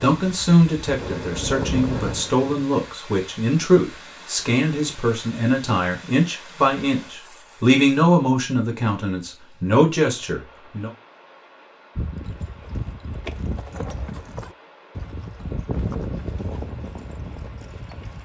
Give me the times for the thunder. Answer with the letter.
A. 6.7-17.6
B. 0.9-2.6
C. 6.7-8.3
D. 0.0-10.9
B.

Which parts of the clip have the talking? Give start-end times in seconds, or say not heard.
0.0-10.9.